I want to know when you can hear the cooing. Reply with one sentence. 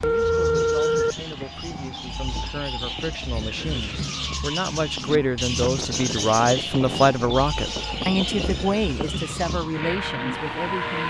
You can hear the cooing from 0.1 to 9.8 s.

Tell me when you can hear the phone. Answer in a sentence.
The phone can be heard from 0.0 to 1.1 s and from 7.5 to 8.8 s.